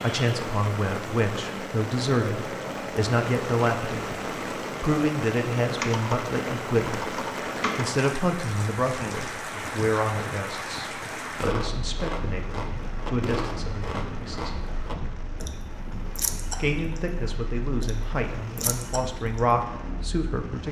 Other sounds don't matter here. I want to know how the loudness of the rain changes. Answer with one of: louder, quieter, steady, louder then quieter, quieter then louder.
quieter.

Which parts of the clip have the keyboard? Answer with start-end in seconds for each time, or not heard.
5.8-8.1.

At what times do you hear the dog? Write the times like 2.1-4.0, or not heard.
not heard.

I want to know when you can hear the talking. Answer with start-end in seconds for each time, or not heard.
0.0-14.6, 16.6-20.6.